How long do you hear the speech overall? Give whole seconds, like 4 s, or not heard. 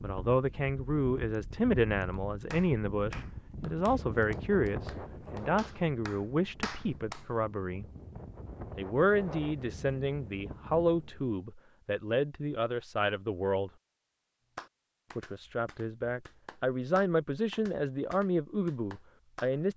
17 s.